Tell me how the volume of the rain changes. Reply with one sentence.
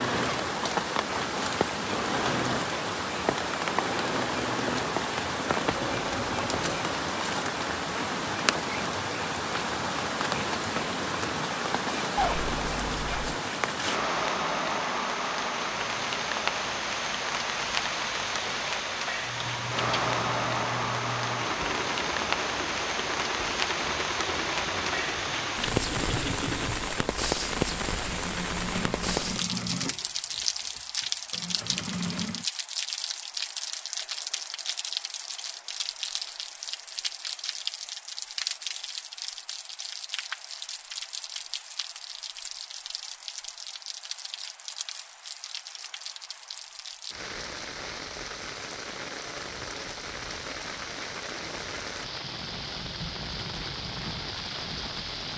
The volume of the rain goes down.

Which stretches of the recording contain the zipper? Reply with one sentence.
You can hear the zipper from 12.2 to 13.4 s.